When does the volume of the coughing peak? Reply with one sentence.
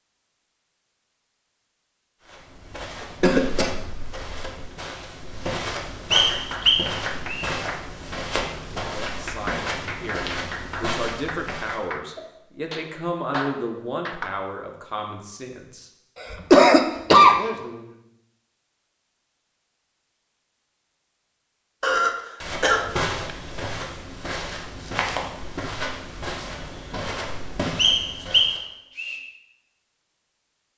The volume of the coughing peaks at 17 seconds.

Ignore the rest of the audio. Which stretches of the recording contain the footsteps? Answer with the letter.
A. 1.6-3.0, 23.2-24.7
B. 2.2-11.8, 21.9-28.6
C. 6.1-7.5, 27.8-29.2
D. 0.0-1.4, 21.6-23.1
B.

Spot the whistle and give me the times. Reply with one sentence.
The whistle can be heard from 6.1 to 7.5 s and from 27.8 to 29.2 s.